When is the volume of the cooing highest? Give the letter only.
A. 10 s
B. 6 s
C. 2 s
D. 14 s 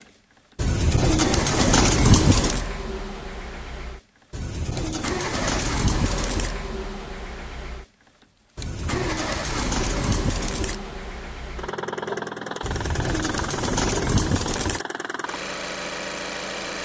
C.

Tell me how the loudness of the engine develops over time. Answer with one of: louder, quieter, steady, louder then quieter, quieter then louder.
steady.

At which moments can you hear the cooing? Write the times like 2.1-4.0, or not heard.
0.6-2.6, 4.3-6.5, 8.6-10.8, 12.6-14.8.